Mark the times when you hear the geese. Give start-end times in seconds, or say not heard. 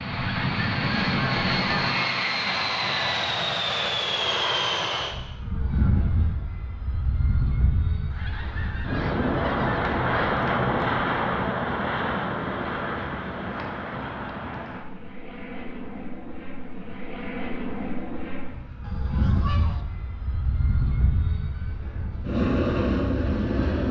0.1-1.9, 8.1-10.3, 18.8-19.9.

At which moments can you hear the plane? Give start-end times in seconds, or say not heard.
0.0-23.8.